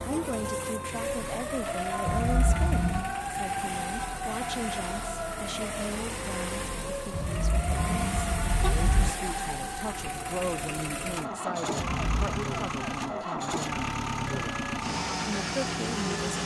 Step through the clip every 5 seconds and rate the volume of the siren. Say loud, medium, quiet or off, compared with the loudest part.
loud, loud, medium, off.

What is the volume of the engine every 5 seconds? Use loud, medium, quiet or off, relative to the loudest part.
medium, medium, loud, loud.